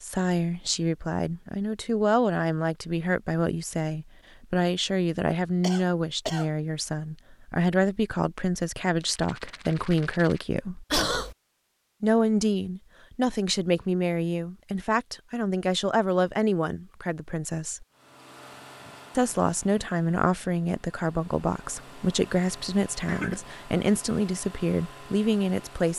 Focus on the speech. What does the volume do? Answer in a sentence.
The loudness of the speech stays about the same.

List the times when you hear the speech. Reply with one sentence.
You can hear the speech from 0.0 to 10.8 s, from 12.0 to 17.9 s and from 19.1 to 25.9 s.